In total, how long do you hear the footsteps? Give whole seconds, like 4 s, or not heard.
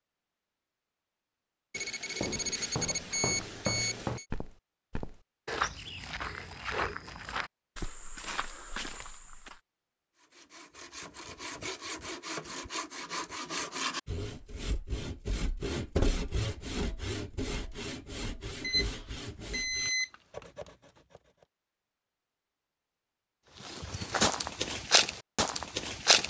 10 s.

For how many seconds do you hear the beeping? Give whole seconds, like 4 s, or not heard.
4 s.